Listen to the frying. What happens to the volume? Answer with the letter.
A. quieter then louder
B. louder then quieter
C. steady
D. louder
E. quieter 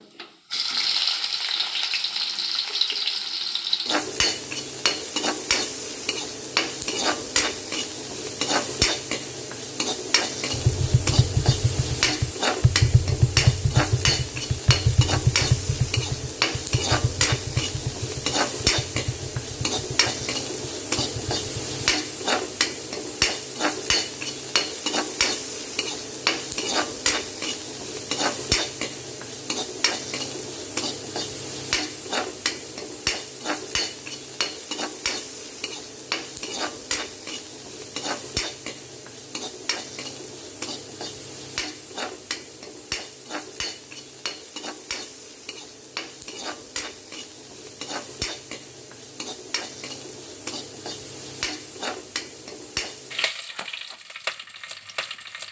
E.